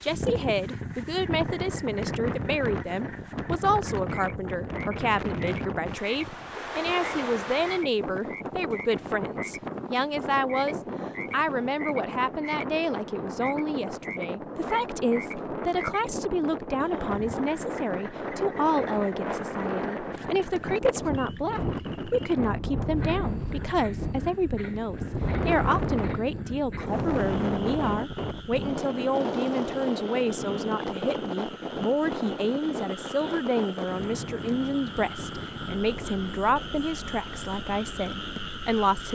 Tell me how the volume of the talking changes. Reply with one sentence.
The loudness of the talking stays about the same.